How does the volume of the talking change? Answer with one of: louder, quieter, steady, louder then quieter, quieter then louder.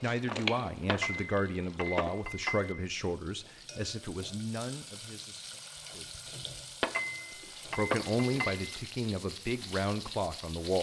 quieter then louder.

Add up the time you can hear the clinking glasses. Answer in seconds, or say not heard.
4 s.